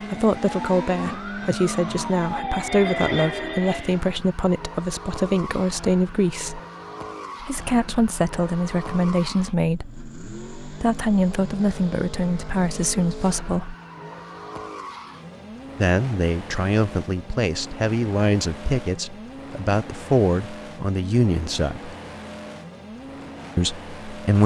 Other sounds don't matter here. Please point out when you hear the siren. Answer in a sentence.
The siren can be heard from 0.0 to 4.0 s.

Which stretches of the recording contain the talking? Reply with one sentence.
You can hear the talking from 0.1 to 6.6 s, from 7.4 to 13.8 s, from 15.8 to 21.9 s and from 23.6 to 24.4 s.